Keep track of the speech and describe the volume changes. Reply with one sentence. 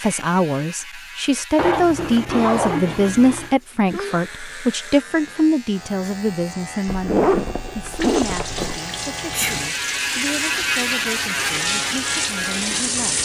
The loudness of the speech goes down.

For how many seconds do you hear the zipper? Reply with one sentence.
The zipper can be heard for 4 seconds in total.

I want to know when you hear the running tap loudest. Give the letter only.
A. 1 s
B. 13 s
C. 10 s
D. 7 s
B.